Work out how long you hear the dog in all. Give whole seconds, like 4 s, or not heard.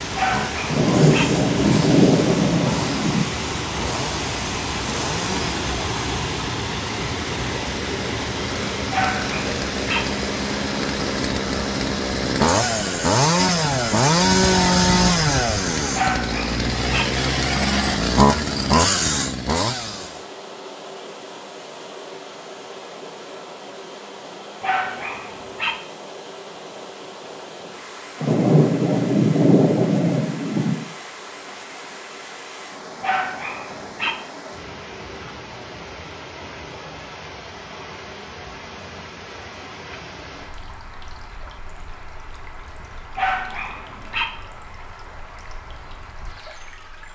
7 s.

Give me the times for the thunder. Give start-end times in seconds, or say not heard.
0.7-3.2, 28.2-30.9.